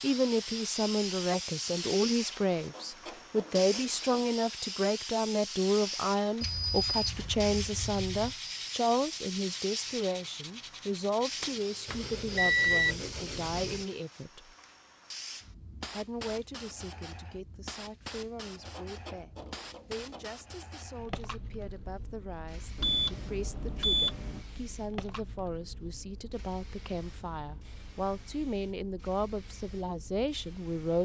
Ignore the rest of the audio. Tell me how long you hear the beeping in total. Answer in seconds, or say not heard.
5 s.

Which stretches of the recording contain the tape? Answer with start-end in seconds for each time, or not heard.
not heard.